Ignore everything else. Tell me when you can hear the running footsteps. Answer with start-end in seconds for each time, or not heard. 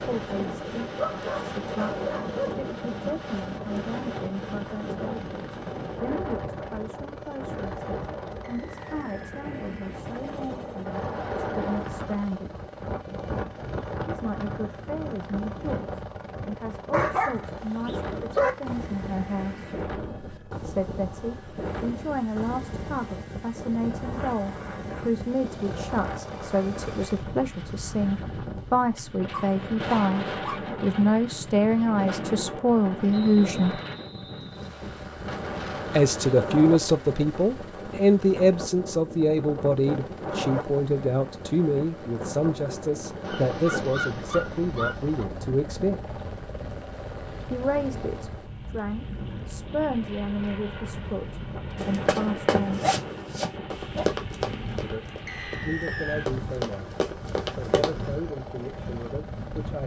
51.8-57.9.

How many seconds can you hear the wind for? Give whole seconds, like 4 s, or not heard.
60 s.